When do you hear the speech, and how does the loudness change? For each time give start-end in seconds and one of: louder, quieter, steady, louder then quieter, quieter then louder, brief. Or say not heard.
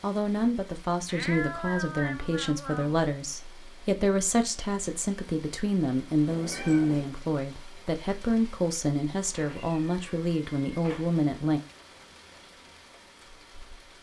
0.0-11.6 steady.